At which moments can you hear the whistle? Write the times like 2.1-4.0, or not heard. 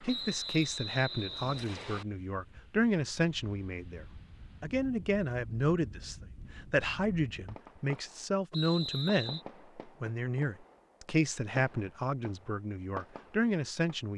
0.1-2.0, 8.5-9.4.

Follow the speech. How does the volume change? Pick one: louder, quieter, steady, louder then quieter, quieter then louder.
steady.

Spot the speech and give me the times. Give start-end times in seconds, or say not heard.
0.0-14.1.